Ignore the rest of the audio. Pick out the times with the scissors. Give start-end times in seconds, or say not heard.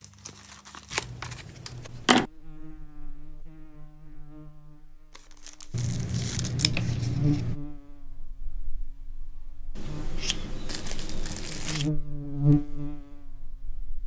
0.9-2.3, 5.7-7.5, 9.8-11.8.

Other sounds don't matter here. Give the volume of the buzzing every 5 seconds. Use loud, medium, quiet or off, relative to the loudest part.
quiet, medium, loud.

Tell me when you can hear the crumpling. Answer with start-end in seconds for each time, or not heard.
0.0-1.2, 5.1-6.5, 10.7-11.9.